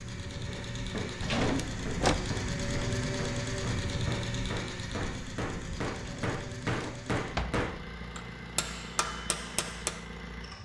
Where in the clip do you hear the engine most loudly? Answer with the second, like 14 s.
3 s.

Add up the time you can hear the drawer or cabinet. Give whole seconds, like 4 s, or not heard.
3 s.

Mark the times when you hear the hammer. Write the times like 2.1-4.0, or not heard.
0.5-10.0.